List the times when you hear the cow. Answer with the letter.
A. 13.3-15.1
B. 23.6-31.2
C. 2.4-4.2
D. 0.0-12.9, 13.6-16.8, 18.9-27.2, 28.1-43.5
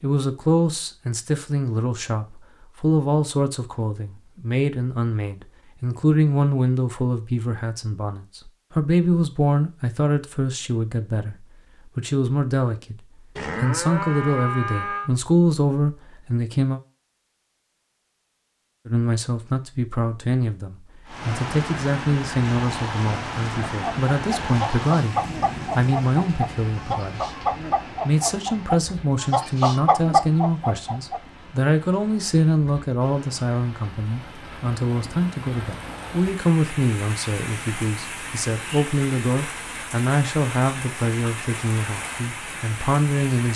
A.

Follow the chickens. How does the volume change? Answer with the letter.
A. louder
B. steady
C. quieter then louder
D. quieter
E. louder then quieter
A.